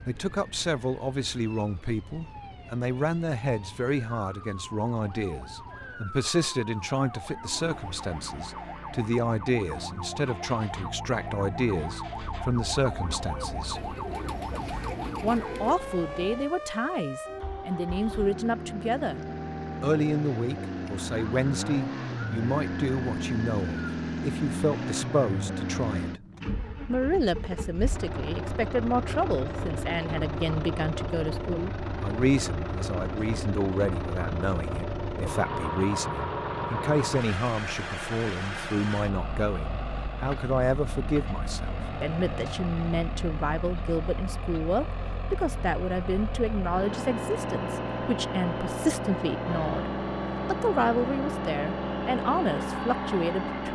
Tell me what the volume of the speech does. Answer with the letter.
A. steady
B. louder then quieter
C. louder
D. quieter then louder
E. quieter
A.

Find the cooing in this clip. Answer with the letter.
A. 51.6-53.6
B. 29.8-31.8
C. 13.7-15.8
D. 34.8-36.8
C.